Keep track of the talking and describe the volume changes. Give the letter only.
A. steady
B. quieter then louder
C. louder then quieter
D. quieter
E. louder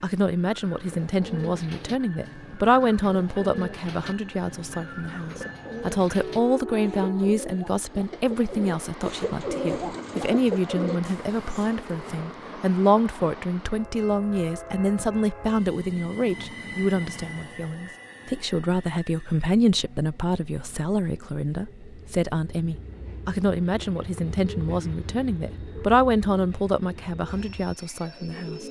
A.